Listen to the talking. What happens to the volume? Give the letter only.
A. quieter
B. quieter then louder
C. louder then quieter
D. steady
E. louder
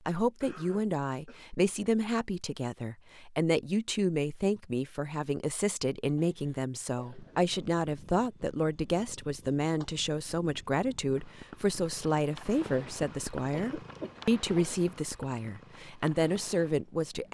D.